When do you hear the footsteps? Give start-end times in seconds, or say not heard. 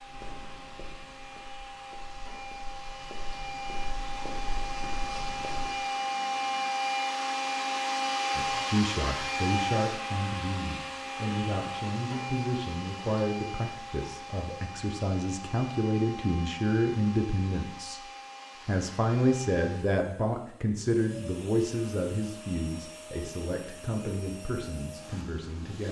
0.0-5.8.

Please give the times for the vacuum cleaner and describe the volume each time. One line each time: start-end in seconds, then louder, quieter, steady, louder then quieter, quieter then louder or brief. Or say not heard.
0.0-25.8 louder then quieter.